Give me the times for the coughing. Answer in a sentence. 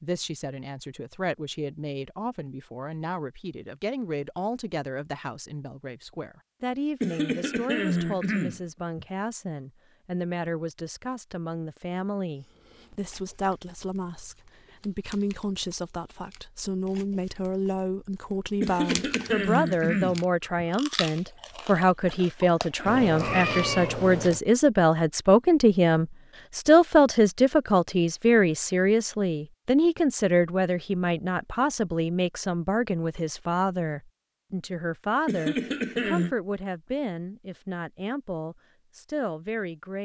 You can hear the coughing from 7.0 to 9.1 s, from 18.6 to 20.6 s and from 35.2 to 36.4 s.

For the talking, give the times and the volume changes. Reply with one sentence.
The talking can be heard from 0.0 to 40.0 s, getting louder then quieter.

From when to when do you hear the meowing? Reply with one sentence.
You can hear the meowing from 22.9 to 24.4 s.